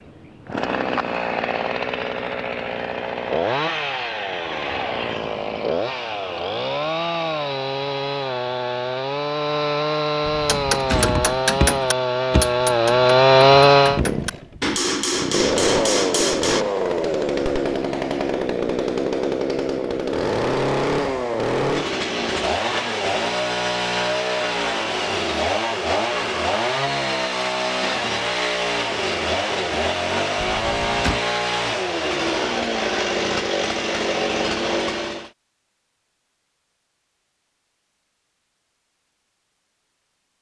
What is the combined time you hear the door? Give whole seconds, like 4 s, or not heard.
2 s.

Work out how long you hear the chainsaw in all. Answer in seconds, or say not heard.
35 s.